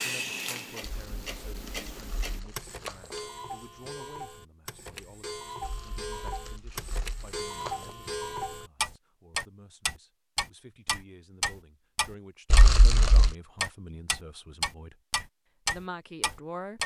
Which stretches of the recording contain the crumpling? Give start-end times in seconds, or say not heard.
0.8-3.2, 5.6-8.0, 12.5-13.3.